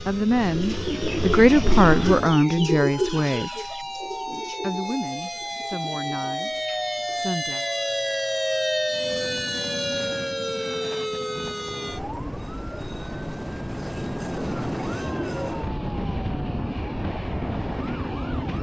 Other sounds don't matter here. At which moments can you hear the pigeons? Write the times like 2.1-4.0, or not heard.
0.5-7.6.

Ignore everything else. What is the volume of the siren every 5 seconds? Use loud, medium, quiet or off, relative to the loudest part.
medium, loud, medium, quiet.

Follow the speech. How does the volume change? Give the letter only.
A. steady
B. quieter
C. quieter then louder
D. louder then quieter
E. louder
B.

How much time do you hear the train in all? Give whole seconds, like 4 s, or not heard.
12 s.